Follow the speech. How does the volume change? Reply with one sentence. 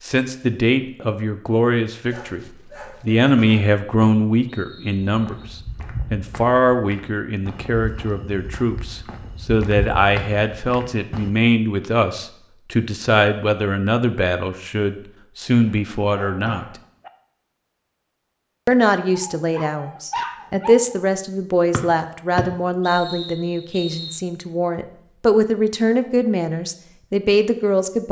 The loudness of the speech stays about the same.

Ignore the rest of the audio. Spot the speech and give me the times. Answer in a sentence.
The speech can be heard from 0.0 to 16.6 s and from 18.6 to 28.0 s.